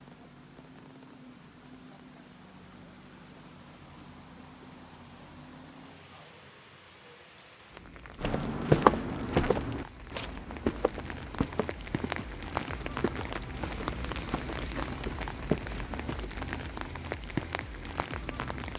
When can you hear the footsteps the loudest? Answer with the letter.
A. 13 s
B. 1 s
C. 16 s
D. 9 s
D.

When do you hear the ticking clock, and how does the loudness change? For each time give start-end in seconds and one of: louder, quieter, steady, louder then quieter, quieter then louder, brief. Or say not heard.
not heard.